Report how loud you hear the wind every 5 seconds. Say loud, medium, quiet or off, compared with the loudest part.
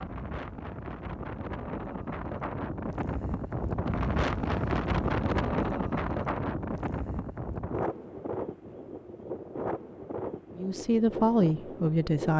loud, loud, medium.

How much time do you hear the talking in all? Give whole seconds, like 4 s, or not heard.
2 s.